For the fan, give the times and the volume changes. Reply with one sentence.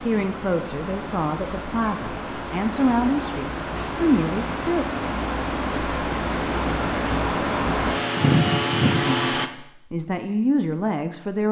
You can hear the fan from 0.0 to 9.5 s, getting louder.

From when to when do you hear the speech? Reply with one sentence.
The speech can be heard from 0.0 to 4.8 s and from 8.9 to 11.4 s.